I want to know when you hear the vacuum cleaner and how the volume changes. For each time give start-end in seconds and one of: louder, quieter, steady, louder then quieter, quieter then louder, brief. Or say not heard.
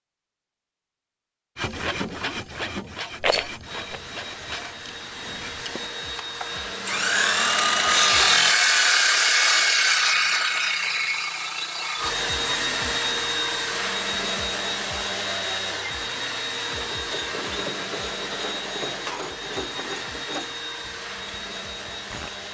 3.6-8.4 louder
11.9-22.4 quieter.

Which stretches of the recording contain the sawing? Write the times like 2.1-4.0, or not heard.
1.6-12.2.